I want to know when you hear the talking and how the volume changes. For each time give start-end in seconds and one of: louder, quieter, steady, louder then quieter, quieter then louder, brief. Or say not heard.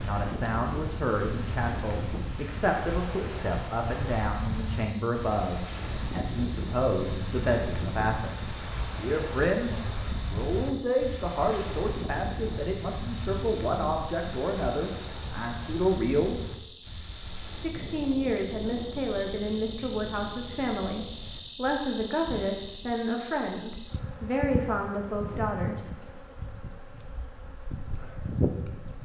0.0-16.4 steady
17.6-25.9 steady.